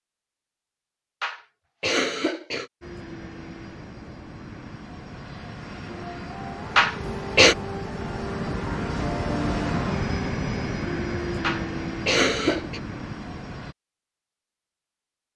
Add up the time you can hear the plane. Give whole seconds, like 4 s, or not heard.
11 s.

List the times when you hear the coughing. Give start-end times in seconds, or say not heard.
1.2-2.7, 6.8-7.5, 11.4-12.8.